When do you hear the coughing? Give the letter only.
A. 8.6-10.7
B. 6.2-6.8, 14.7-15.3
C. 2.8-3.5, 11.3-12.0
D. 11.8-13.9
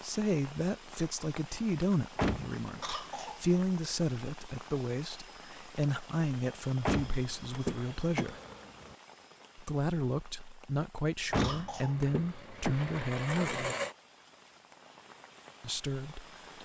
C.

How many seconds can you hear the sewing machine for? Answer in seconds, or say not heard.
2 s.